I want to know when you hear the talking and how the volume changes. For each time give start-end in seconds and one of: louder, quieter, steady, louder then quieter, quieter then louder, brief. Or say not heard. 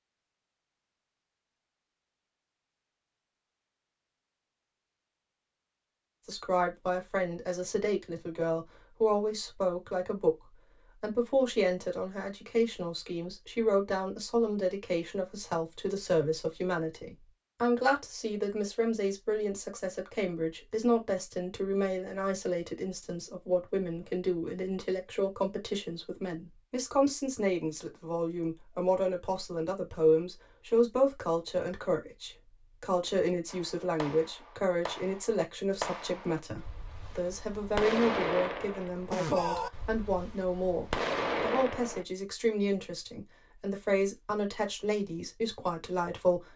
6.2-46.5 steady.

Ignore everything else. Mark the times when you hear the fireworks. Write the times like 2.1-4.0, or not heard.
33.5-42.0.